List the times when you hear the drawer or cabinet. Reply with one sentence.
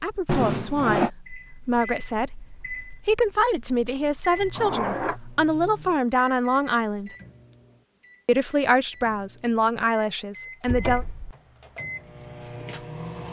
The drawer or cabinet can be heard from 0.2 to 1.1 s, from 4.5 to 5.2 s and from 10.7 to 11.3 s.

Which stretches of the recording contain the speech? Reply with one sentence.
The speech can be heard from 0.0 to 7.1 s and from 8.2 to 11.1 s.